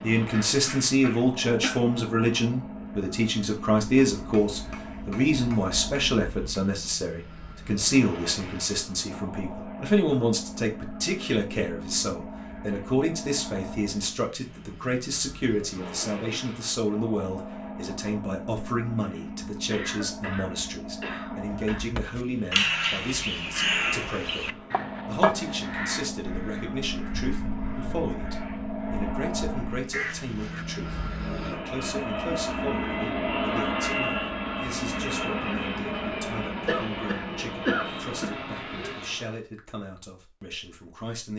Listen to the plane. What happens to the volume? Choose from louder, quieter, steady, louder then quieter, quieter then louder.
louder.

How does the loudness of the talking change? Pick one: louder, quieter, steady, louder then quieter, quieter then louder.
quieter.